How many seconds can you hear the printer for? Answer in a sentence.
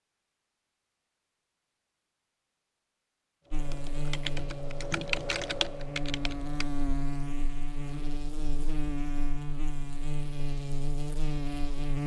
The printer can't be heard in this clip.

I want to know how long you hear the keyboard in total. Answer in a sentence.
You can hear the keyboard for 3 seconds altogether.